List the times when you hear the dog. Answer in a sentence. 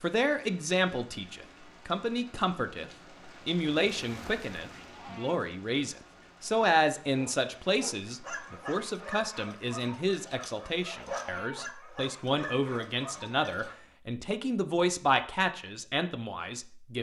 You can hear the dog from 7.2 to 13.8 s.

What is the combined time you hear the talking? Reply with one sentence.
The talking can be heard for 17 seconds in total.